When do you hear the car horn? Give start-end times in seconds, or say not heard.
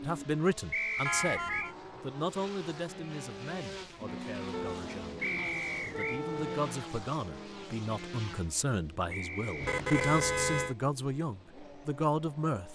1.1-1.8, 4.5-6.7, 9.6-10.8.